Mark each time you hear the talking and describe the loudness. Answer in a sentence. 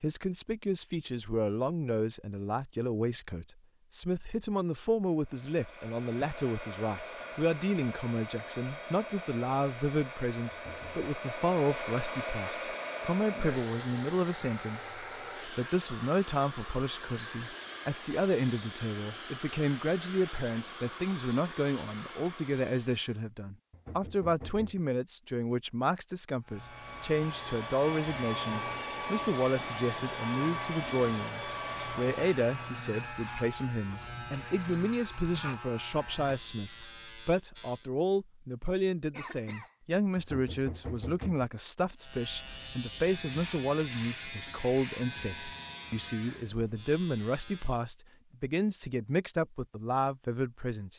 The talking can be heard from 0.0 to 50.9 s, at a steady volume.